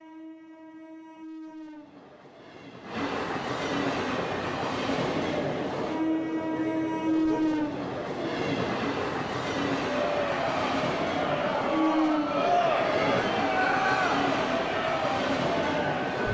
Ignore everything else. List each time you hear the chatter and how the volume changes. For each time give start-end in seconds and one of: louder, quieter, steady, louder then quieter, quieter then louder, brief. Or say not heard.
3.9-16.3 louder.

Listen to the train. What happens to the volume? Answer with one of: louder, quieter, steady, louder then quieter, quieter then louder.
louder.